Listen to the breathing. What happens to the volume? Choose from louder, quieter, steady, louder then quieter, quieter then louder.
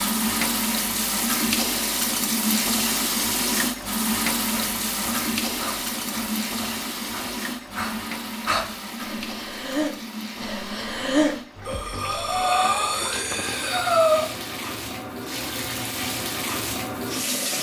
louder.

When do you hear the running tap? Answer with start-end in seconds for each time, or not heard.
0.0-17.5.